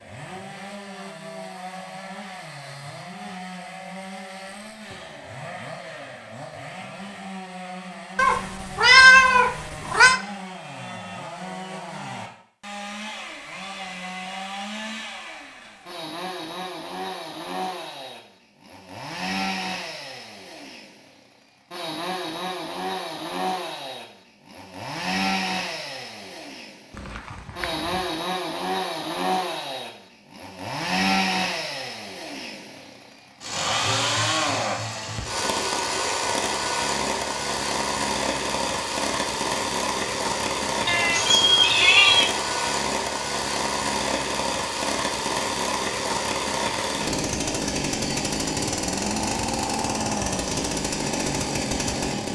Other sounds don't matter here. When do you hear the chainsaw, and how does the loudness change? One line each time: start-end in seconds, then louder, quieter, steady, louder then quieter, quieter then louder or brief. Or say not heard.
0.0-52.3 louder.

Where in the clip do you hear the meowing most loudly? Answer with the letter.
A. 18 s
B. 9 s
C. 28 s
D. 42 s
B.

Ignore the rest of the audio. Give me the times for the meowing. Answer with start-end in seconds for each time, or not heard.
8.2-10.2, 26.9-28.1, 40.9-42.3.